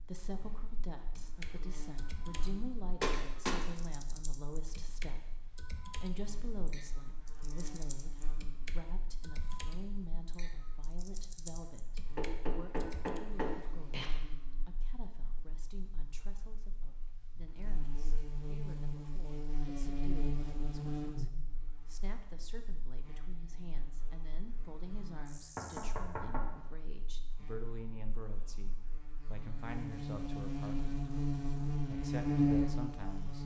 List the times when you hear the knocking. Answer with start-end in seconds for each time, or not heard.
3.0-3.6, 12.2-14.1, 25.4-26.6.